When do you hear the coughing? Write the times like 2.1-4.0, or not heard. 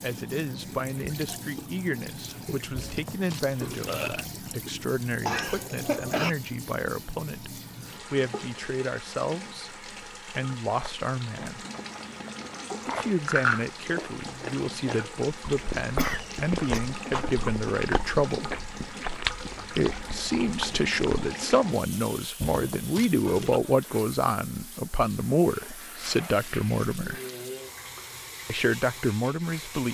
5.2-6.3, 15.9-16.8.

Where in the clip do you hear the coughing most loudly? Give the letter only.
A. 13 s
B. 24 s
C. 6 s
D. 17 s
C.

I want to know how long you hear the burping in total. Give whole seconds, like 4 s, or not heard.
3 s.